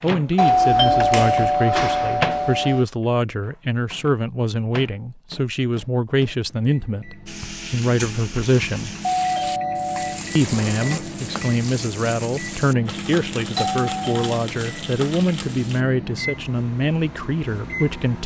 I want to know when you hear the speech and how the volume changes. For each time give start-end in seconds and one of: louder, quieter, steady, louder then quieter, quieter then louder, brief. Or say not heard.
0.0-8.9 steady
10.3-18.2 steady.